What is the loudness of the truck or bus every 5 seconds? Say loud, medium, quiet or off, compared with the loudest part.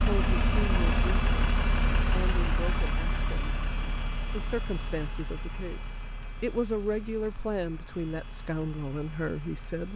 loud, quiet.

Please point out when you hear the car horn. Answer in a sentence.
The car horn can't be heard in this clip.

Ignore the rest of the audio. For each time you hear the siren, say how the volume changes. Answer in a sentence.
You can't hear the siren here.